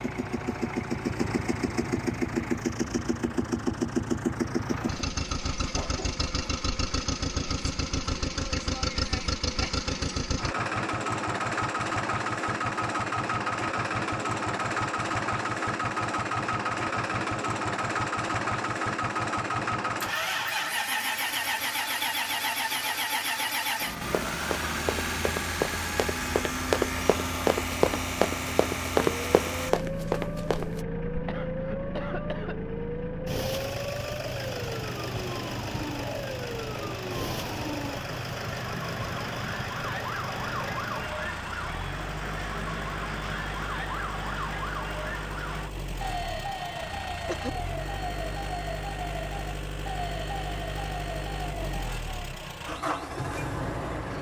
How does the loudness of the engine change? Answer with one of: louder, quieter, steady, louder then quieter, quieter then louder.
quieter.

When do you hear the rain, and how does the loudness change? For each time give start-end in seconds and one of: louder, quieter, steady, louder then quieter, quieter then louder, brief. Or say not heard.
not heard.